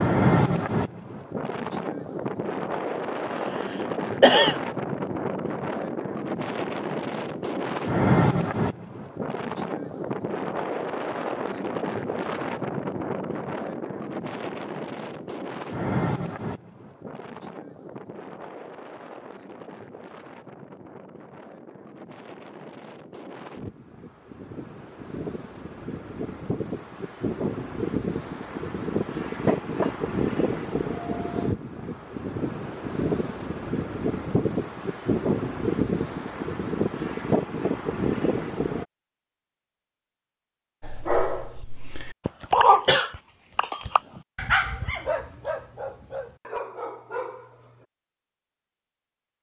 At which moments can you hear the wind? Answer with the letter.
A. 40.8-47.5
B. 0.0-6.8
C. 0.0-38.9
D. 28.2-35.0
C.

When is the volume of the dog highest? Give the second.
43 s.